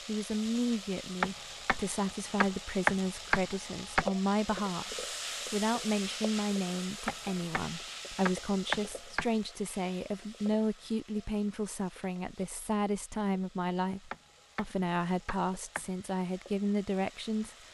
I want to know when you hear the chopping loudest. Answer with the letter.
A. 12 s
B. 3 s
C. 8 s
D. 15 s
B.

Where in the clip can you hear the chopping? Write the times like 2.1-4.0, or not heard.
1.2-4.0, 7.0-9.3, 14.1-15.8.